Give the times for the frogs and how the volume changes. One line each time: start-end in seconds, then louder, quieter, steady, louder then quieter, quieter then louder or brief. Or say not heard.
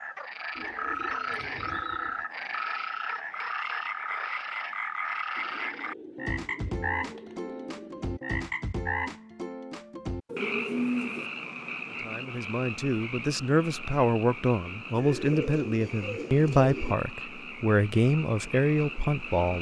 0.0-19.5 quieter.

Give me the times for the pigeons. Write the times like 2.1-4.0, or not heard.
0.6-2.2, 5.3-8.2, 10.2-11.3, 14.9-16.9.